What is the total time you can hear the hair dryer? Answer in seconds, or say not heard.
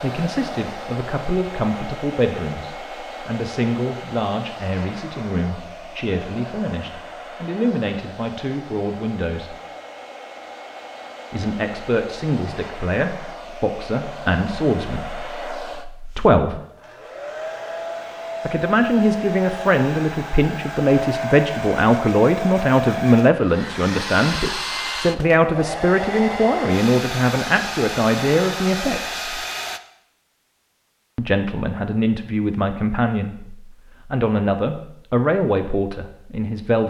30 s.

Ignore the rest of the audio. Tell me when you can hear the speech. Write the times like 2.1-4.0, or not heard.
0.0-9.6, 11.3-16.6, 18.4-29.4, 31.1-36.8.